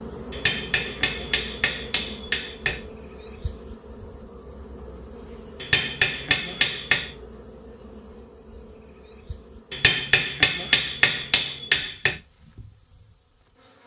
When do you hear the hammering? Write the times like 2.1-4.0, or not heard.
0.3-2.8, 5.6-7.1, 9.7-12.2.